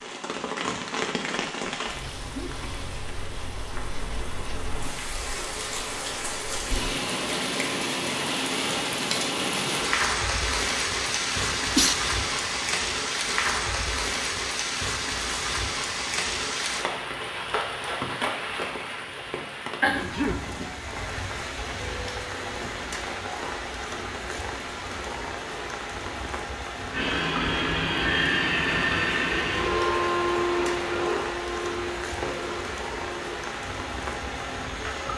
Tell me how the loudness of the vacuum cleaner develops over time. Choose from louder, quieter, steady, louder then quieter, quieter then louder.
quieter.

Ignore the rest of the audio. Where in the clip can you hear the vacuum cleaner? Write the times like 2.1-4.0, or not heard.
26.9-35.1.